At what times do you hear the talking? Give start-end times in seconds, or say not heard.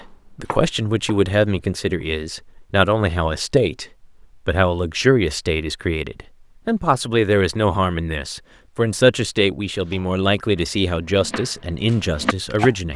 0.3-3.9, 4.5-12.9.